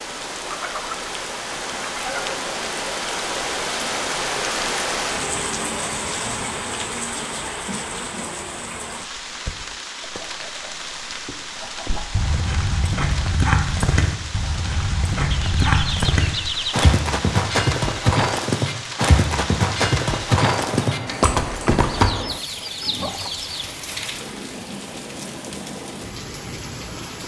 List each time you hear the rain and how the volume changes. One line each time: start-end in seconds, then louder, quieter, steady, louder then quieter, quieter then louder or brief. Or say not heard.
0.0-27.2 quieter.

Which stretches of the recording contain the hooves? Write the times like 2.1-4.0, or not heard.
11.8-22.1.